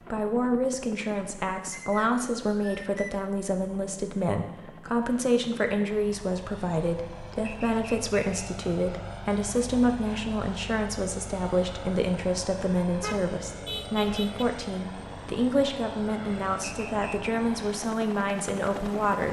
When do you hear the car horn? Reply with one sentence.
You can hear the car horn from 12.9 to 14.4 s.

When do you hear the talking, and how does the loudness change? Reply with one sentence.
The talking can be heard from 0.1 to 19.2 s, at a steady volume.